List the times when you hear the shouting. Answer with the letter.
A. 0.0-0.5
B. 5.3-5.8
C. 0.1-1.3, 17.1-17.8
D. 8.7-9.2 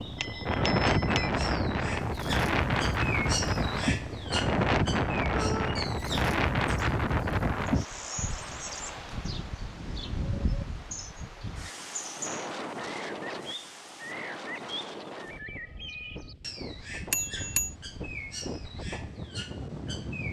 B.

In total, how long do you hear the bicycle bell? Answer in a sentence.
You can hear the bicycle bell for 2 seconds altogether.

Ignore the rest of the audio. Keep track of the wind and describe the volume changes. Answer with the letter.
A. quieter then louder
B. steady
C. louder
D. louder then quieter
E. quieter
E.